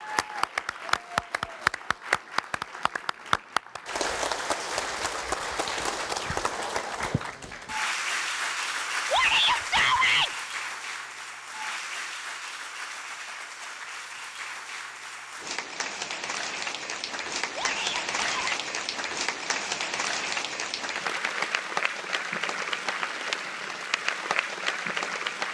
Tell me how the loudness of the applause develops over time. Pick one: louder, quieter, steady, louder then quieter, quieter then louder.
quieter then louder.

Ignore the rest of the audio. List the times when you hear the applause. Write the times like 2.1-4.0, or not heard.
0.0-25.5.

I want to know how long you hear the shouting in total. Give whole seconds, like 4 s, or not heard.
2 s.